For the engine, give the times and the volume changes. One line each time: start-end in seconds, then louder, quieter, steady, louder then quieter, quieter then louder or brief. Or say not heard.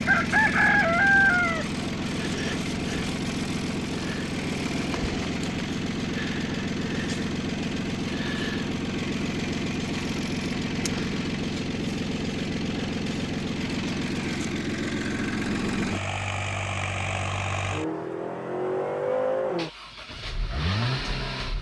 0.0-21.5 steady.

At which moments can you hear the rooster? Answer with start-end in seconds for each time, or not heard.
0.1-1.6.